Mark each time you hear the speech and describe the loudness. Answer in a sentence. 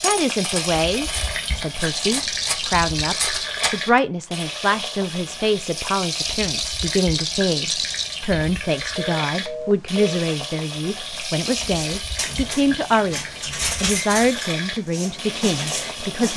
You can hear the speech from 0.0 to 16.3 s, at a steady volume.